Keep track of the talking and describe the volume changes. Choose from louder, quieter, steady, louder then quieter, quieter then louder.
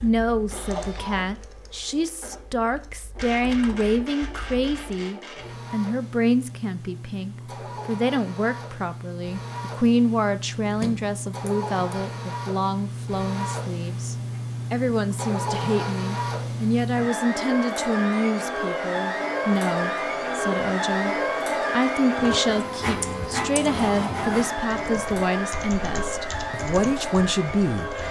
steady.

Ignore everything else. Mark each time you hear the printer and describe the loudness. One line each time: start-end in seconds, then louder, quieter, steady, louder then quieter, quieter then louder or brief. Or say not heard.
0.0-28.0 louder.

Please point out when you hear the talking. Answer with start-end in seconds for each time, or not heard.
0.0-27.9.